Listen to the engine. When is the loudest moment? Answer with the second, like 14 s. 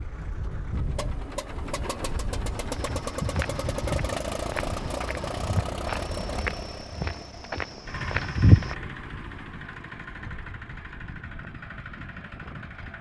4 s.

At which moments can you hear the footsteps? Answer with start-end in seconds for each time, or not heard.
2.8-8.8.